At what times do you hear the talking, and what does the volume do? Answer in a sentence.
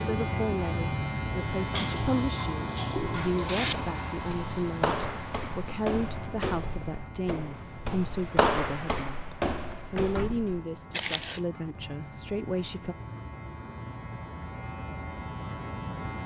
You can hear the talking from 0.0 to 12.9 s, at a steady volume.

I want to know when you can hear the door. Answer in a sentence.
You can hear the door from 9.9 to 10.7 s.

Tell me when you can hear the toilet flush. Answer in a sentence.
The toilet flush can be heard from 1.7 to 3.8 s.